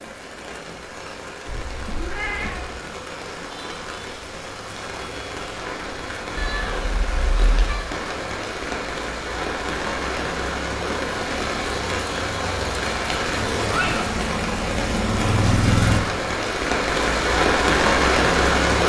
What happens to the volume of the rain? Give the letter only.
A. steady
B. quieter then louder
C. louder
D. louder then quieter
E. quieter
C.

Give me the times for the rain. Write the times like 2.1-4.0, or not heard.
0.0-18.8.